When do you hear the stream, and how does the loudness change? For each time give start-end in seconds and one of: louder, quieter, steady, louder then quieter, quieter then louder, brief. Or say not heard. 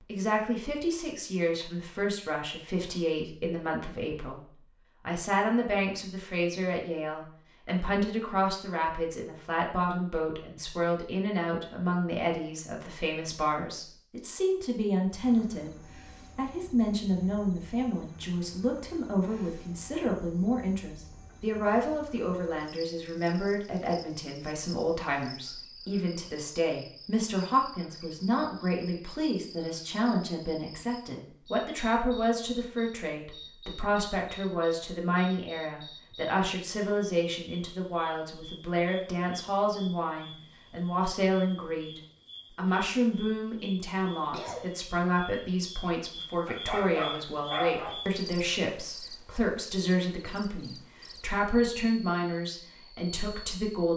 not heard.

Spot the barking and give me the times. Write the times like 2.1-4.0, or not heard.
46.5-48.0.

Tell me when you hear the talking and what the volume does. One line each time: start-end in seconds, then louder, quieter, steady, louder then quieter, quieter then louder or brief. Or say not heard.
0.1-4.4 steady
5.0-15.7 steady
16.4-53.9 steady.